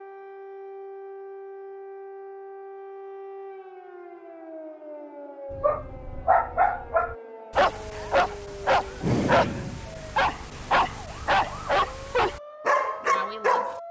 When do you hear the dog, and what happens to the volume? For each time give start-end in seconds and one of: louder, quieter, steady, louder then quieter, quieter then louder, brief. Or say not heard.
5.5-13.8 steady.